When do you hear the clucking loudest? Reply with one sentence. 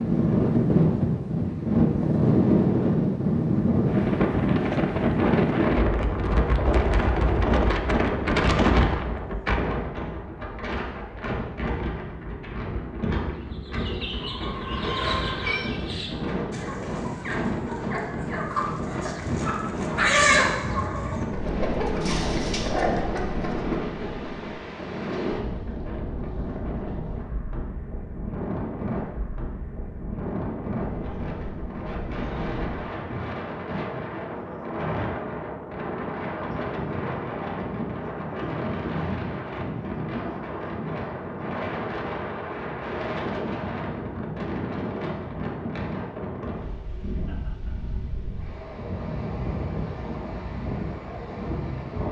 The volume of the clucking peaks at 20 seconds.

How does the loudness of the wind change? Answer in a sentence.
The loudness of the wind goes down.